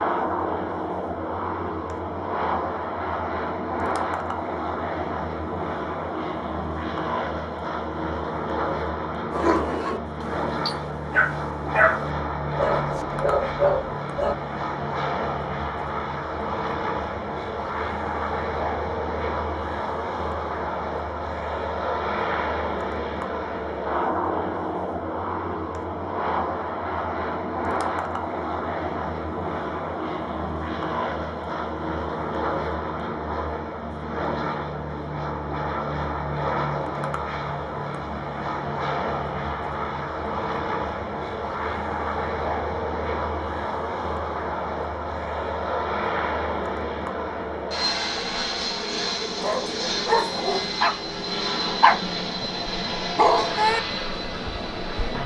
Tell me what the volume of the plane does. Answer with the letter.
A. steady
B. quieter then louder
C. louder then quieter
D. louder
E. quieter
A.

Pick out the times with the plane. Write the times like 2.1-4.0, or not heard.
0.0-55.2.